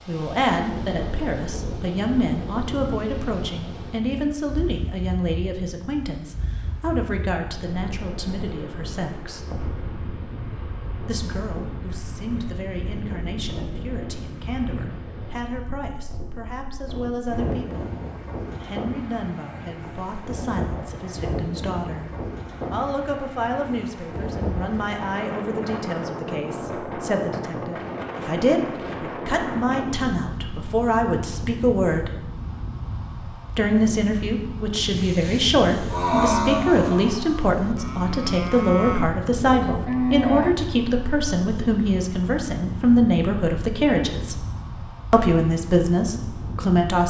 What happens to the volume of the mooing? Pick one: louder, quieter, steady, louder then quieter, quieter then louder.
quieter then louder.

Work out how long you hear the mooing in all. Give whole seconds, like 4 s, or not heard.
6 s.